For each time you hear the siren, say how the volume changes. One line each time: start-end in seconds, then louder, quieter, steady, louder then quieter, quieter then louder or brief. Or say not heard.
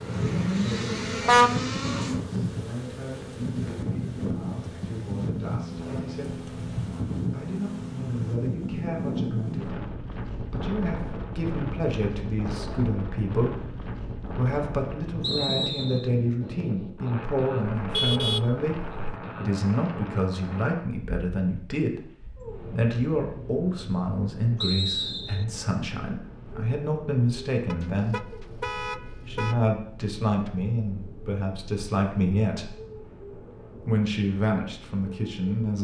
not heard.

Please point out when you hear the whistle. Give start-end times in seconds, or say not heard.
15.2-16.1, 24.6-25.4.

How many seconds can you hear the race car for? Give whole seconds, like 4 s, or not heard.
2 s.